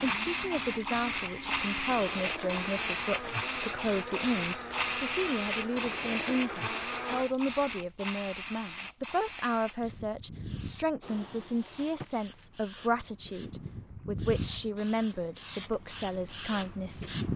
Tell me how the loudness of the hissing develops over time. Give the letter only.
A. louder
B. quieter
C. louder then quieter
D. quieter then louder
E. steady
D.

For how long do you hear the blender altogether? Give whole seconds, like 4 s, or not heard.
7 s.